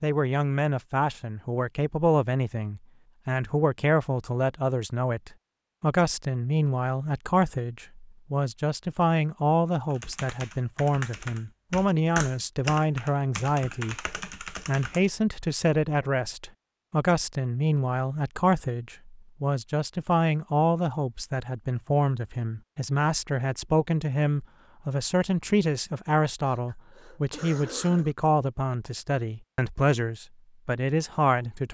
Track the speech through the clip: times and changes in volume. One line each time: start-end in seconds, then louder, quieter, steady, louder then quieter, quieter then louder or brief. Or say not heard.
0.0-31.6 steady.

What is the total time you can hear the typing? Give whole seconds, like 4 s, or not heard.
5 s.